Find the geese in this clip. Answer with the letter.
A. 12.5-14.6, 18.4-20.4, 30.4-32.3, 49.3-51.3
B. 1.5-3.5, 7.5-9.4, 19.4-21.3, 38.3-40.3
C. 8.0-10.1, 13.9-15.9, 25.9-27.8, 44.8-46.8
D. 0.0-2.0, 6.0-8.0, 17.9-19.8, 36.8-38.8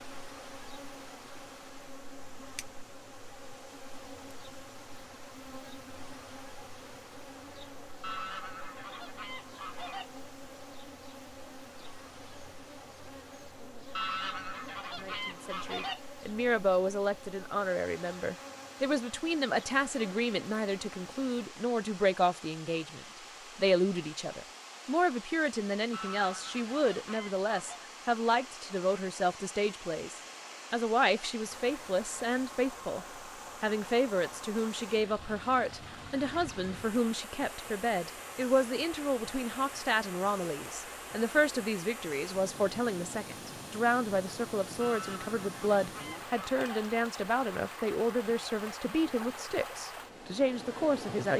C.